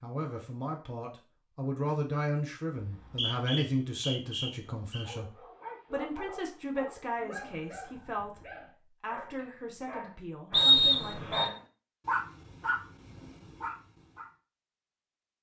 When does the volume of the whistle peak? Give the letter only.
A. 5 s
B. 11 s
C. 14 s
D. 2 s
B.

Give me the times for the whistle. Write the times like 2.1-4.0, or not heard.
2.8-5.0, 10.5-11.5.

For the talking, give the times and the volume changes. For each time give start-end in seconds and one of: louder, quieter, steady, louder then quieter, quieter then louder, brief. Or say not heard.
0.0-11.6 quieter.